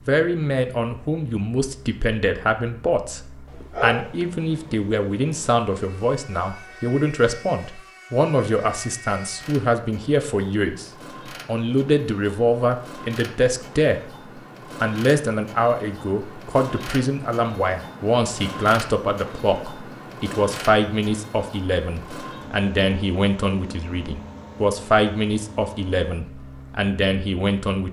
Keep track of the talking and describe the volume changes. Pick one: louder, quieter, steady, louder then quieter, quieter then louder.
steady.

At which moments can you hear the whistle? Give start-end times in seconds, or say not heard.
not heard.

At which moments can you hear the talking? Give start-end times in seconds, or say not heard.
0.1-14.0, 14.8-27.8.